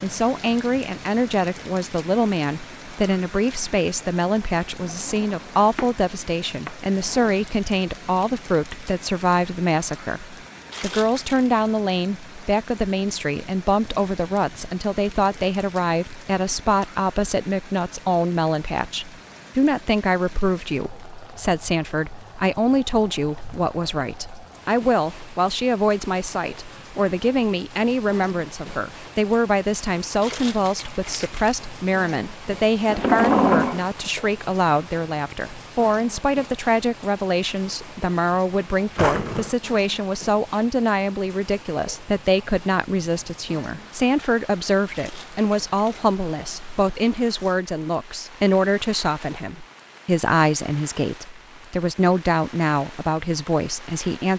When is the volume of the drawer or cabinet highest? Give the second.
33 s.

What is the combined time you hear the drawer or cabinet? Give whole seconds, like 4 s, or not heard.
3 s.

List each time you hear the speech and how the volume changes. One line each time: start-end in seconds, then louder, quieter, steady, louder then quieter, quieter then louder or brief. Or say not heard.
0.0-54.3 steady.